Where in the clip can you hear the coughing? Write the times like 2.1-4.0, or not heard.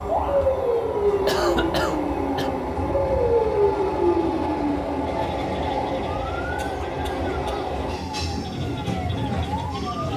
1.2-2.5, 6.5-7.8.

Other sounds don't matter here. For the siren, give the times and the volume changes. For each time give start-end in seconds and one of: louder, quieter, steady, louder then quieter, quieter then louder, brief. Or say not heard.
0.0-10.1 quieter.